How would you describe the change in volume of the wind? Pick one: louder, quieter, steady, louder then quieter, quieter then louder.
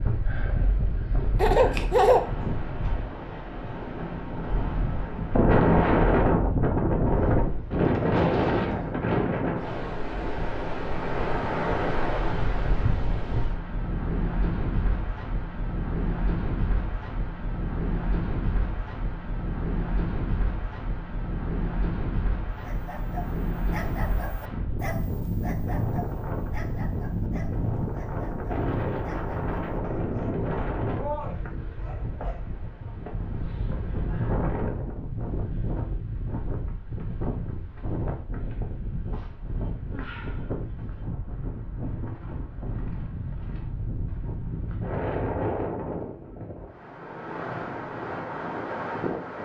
quieter.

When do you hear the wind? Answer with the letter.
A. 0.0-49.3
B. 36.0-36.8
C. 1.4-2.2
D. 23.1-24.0
A.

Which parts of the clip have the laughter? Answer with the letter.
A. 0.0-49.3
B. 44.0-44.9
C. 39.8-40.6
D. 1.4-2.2
D.